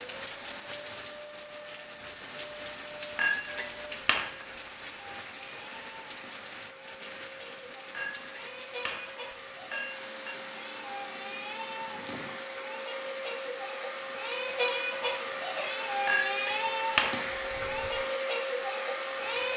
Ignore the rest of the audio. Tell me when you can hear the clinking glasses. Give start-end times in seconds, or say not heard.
3.1-4.5, 7.9-10.3, 16.1-17.3.